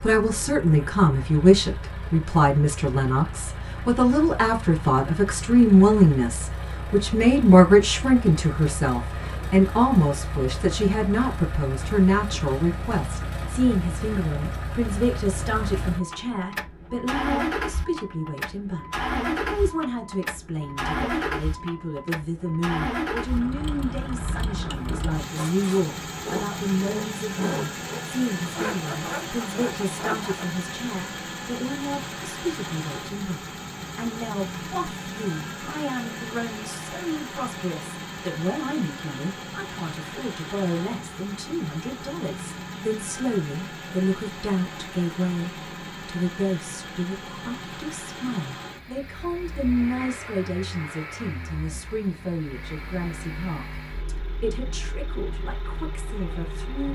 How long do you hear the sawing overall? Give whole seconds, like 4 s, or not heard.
5 s.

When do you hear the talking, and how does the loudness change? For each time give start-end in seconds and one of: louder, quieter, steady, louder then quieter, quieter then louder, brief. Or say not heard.
0.0-56.8 quieter.